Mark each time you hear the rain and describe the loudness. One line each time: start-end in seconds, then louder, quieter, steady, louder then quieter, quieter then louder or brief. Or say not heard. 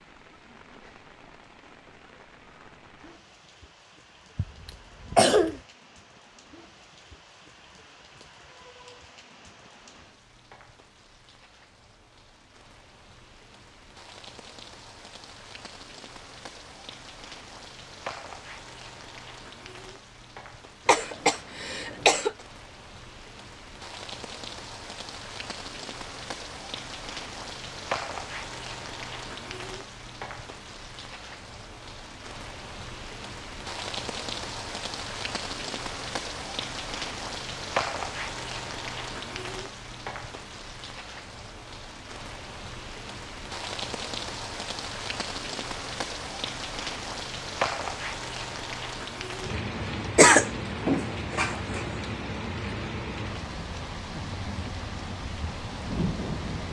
0.0-56.6 louder.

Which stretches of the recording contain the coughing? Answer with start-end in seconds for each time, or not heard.
4.3-5.5, 20.9-22.4, 50.1-51.8.